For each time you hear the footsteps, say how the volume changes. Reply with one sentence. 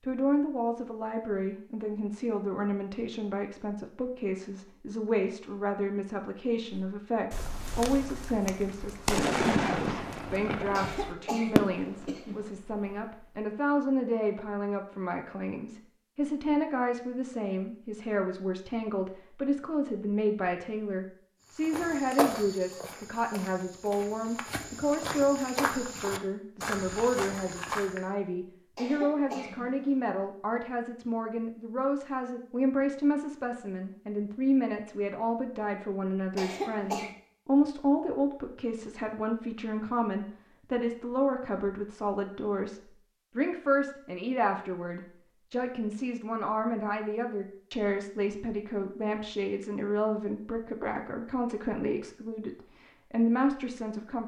The footsteps can be heard from 21.6 to 28.0 s, getting quieter then louder.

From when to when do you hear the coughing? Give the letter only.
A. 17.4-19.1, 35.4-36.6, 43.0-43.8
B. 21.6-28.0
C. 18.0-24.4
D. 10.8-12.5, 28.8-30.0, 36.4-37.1
D.